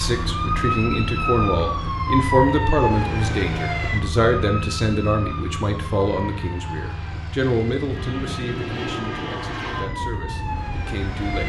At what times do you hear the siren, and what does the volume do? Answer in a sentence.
You can hear the siren from 0.0 to 11.4 s, getting quieter then louder.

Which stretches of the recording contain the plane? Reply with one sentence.
The plane can be heard from 0.0 to 11.4 s.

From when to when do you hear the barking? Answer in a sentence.
You can't hear the barking here.